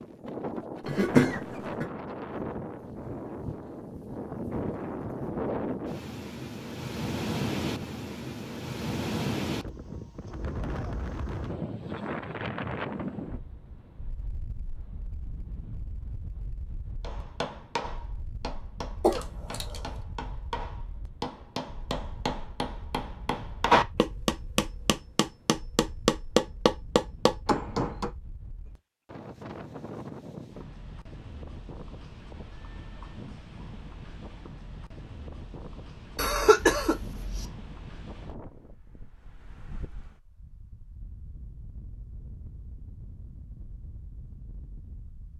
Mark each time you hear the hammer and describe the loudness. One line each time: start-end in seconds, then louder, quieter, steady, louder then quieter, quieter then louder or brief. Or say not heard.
17.0-28.1 louder.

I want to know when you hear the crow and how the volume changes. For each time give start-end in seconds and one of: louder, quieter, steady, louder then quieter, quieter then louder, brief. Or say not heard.
not heard.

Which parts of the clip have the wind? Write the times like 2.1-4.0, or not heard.
0.0-45.3.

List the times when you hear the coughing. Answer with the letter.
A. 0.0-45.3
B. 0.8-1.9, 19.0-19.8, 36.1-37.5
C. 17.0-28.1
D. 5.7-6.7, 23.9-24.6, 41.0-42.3
B.